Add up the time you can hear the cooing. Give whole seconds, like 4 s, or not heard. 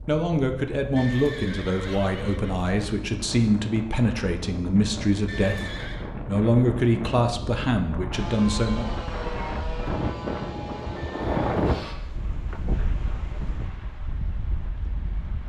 not heard.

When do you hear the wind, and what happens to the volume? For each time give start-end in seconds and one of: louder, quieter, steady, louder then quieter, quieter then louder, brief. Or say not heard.
0.0-15.4 louder then quieter.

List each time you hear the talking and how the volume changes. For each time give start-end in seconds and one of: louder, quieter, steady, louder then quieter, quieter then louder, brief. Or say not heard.
0.1-8.8 steady.